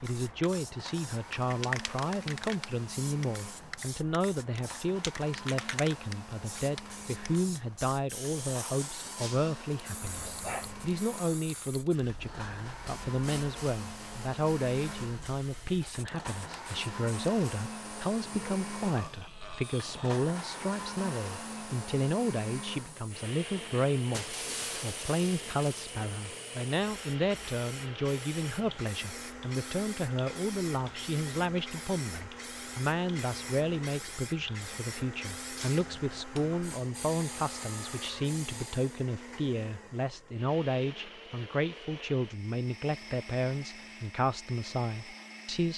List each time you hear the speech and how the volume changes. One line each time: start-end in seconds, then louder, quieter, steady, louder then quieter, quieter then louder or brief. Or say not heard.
0.0-45.7 steady.